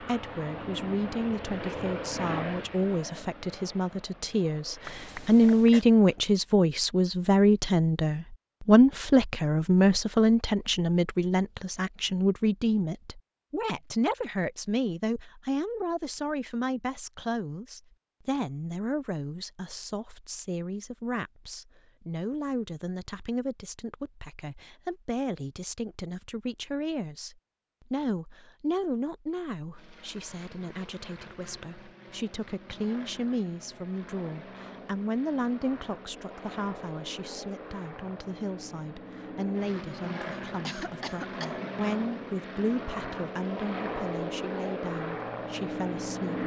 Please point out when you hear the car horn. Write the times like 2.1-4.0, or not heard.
not heard.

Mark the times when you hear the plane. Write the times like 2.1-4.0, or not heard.
0.0-6.2, 29.7-46.4.